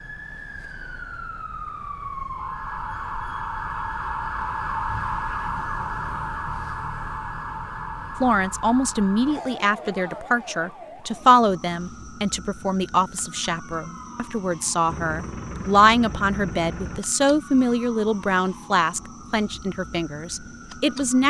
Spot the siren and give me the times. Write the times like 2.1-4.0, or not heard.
0.0-21.2.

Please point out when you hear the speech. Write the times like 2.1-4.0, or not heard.
8.2-21.2.